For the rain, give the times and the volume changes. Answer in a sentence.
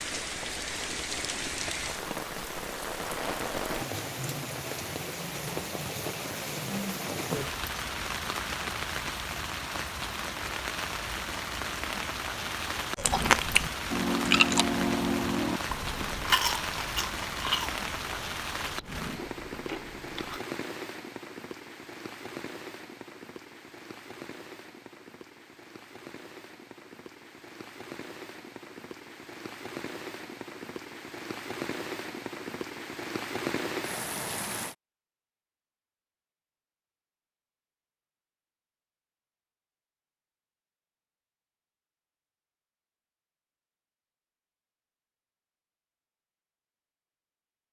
You can hear the rain from 0.0 to 34.8 s, getting quieter then louder.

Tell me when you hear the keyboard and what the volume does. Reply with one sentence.
You can't hear the keyboard here.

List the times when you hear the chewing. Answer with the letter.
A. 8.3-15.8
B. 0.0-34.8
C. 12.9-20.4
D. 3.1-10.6
C.